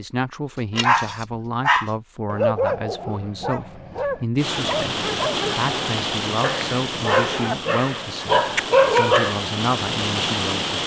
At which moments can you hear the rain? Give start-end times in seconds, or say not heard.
4.3-10.8.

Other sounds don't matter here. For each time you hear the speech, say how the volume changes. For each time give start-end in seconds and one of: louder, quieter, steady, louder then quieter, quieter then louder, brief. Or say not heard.
0.0-10.8 steady.